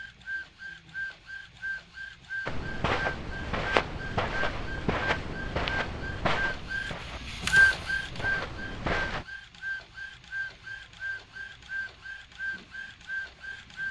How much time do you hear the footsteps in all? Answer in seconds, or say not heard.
7 s.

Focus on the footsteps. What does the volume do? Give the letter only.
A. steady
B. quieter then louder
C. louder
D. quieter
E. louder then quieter
D.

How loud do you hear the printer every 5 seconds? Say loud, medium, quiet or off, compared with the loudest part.
medium, loud, medium.